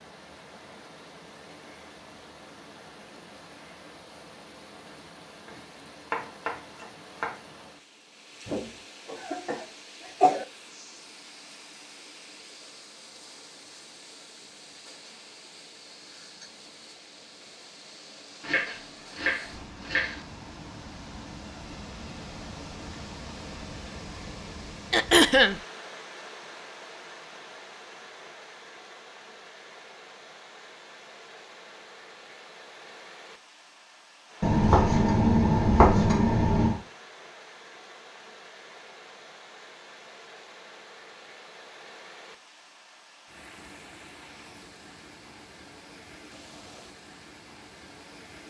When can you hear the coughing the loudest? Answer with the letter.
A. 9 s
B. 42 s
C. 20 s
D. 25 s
D.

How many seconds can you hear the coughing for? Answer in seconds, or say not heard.
3 s.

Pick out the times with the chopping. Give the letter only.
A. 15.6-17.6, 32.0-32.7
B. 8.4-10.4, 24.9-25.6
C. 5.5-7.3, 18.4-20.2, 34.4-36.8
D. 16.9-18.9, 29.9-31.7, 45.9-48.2
C.